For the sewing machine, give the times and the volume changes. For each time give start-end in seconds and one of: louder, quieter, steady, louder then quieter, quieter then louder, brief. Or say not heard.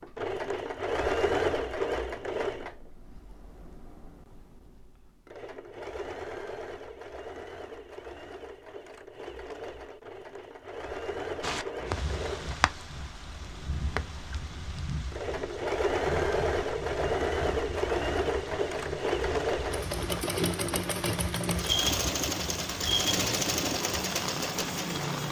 0.0-25.2 quieter then louder.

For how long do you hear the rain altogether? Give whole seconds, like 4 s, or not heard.
14 s.